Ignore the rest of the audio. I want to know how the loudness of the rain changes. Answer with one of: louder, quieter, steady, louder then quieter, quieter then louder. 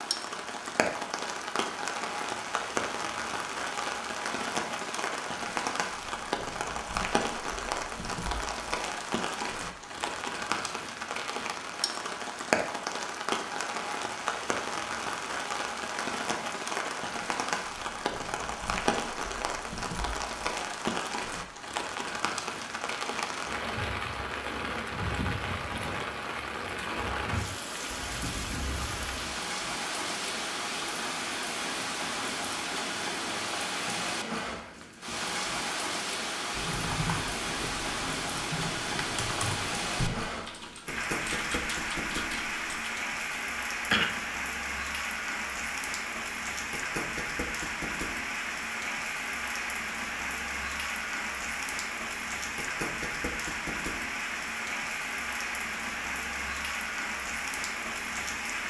steady.